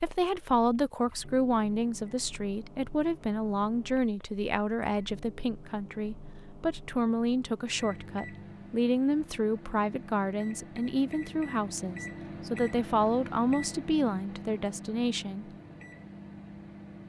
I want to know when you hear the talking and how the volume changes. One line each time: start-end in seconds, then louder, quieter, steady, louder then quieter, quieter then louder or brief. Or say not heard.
0.0-15.5 steady.